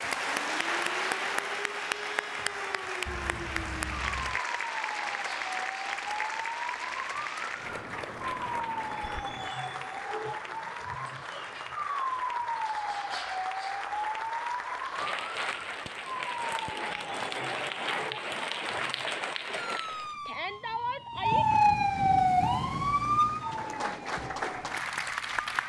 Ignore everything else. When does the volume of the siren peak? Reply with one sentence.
The loudest moment of the siren is at 22 seconds.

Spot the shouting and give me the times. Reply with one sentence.
The shouting can be heard from 20.2 to 21.5 s.